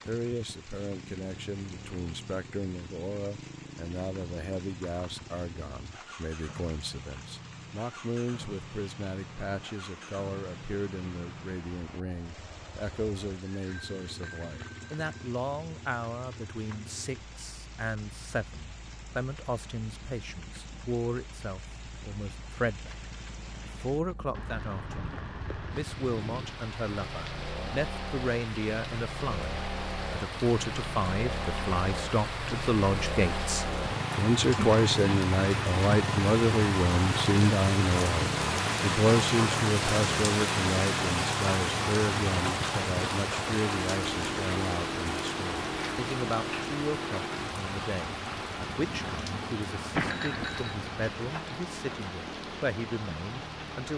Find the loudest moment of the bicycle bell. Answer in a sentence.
The volume of the bicycle bell peaks at 50 seconds.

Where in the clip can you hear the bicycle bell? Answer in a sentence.
You can hear the bicycle bell from 13.7 to 15.1 s and from 50.0 to 50.9 s.